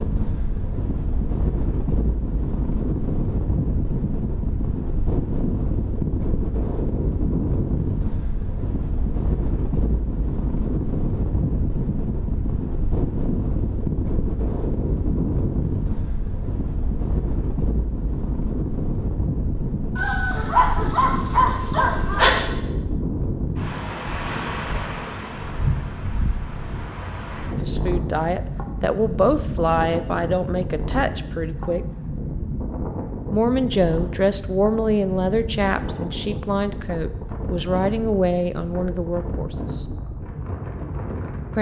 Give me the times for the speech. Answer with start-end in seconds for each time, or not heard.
27.6-31.9, 33.3-39.8.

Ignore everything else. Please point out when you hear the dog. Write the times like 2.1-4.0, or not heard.
19.9-22.4.